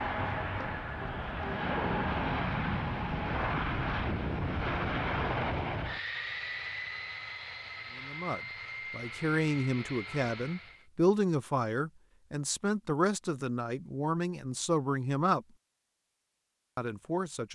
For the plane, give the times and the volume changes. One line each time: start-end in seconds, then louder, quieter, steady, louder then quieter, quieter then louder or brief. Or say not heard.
0.0-10.8 quieter.